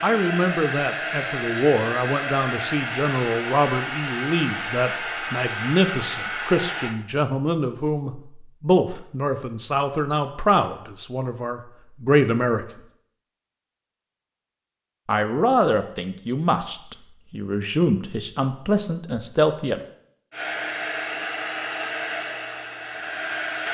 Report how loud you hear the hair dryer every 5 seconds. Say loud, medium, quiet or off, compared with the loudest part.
loud, loud, off, off, loud.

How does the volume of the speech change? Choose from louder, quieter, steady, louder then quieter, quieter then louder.
steady.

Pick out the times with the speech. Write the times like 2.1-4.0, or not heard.
0.0-12.7, 15.1-19.8.